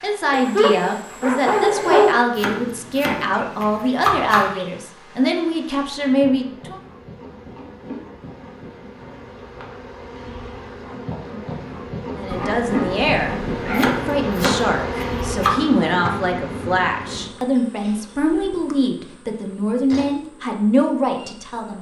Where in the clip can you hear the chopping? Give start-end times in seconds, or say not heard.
2.4-4.5, 13.8-15.6.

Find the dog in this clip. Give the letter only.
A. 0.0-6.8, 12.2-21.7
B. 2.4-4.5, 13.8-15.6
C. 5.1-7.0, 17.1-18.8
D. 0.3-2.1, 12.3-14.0
D.